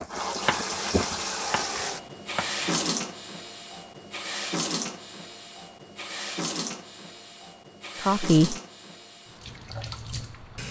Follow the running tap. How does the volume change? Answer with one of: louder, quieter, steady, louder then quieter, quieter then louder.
quieter.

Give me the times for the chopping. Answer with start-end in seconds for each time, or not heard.
0.4-2.9.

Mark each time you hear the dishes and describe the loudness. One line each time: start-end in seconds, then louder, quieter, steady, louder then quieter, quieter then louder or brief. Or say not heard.
not heard.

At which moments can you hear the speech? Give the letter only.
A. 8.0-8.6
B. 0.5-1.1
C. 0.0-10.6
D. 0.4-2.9
A.